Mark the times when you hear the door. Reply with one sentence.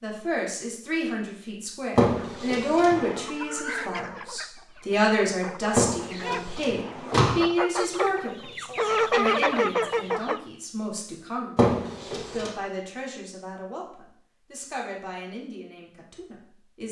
You can hear the door from 1.9 to 3.2 s, from 5.8 to 7.4 s and from 11.6 to 12.5 s.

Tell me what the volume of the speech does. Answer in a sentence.
The volume of the speech goes down.